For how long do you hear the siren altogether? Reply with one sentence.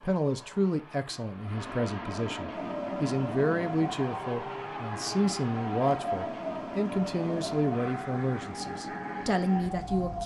You can hear the siren for 8 seconds altogether.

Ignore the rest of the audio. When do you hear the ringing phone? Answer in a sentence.
You can't hear the ringing phone here.